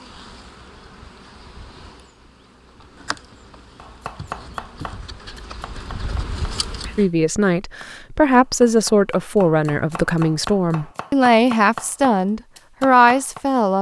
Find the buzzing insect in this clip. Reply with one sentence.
You can hear the buzzing insect from 0.0 to 7.0 s.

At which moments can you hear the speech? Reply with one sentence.
You can hear the speech from 7.0 to 13.7 s.